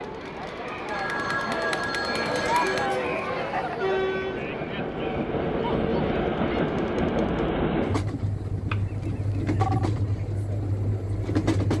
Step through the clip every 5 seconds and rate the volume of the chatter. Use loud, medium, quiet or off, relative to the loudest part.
loud, medium, off.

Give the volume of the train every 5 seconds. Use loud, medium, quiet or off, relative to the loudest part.
medium, loud, loud.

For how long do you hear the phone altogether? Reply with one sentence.
You can hear the phone for 3 seconds altogether.